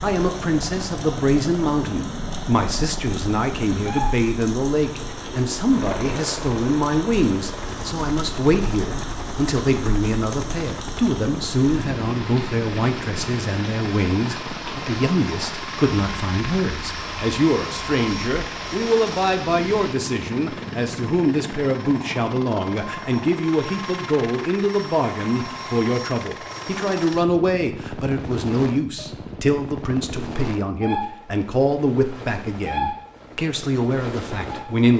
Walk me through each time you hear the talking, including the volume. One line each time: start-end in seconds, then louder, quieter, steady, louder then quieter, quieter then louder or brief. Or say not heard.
0.0-34.9 steady.